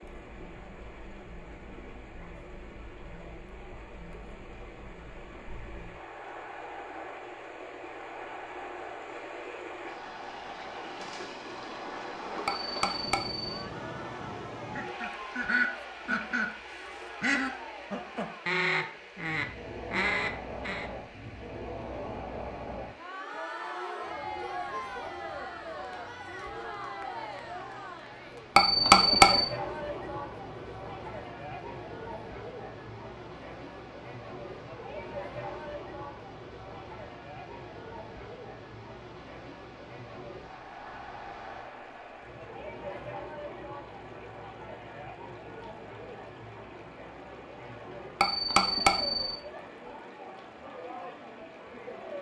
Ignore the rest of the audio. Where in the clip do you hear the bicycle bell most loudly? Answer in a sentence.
The loudest moment of the bicycle bell is at 29 seconds.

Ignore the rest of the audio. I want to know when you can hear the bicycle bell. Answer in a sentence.
The bicycle bell can be heard from 12.4 to 13.5 s, from 28.6 to 29.5 s and from 48.2 to 49.4 s.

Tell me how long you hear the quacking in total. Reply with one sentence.
The quacking can be heard for 6 seconds in total.